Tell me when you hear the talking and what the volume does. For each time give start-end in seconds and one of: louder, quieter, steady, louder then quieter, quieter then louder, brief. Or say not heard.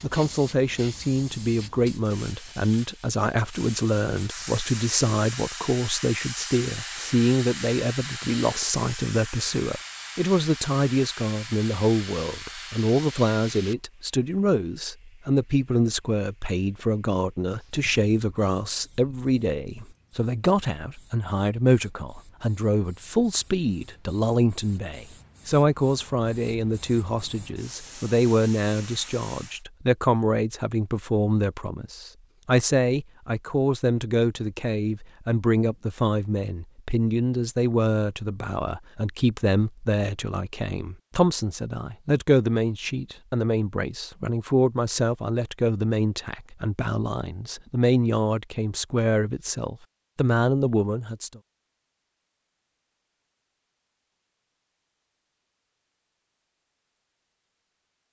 0.0-51.4 steady.